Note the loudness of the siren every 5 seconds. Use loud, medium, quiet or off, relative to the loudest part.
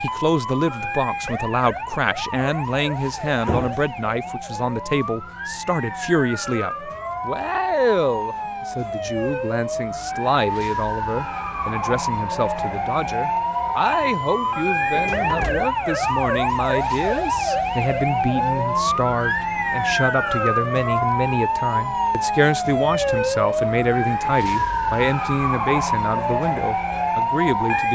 medium, medium, loud, loud, loud, loud.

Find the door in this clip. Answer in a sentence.
The door can be heard from 3.4 to 3.9 s and from 14.9 to 15.7 s.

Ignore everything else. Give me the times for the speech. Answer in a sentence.
You can hear the speech from 0.0 to 27.9 s.